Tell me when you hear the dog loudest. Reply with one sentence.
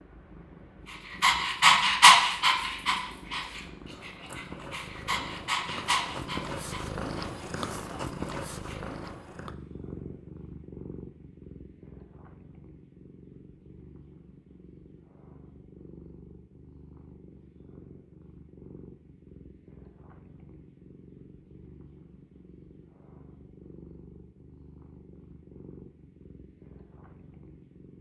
The volume of the dog peaks at 2 seconds.